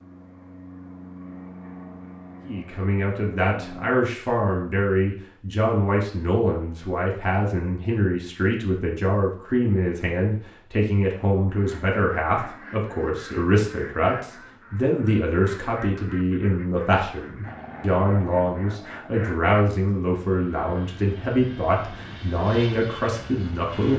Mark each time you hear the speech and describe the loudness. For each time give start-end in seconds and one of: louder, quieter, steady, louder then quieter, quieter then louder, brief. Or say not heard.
2.5-23.9 steady.